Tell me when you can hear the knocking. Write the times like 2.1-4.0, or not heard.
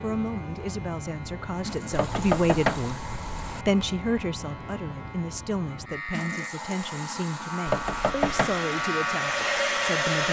1.9-3.4, 7.7-8.6.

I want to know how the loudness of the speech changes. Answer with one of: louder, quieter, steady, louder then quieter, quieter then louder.
louder then quieter.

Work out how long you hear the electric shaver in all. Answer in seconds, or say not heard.
10 s.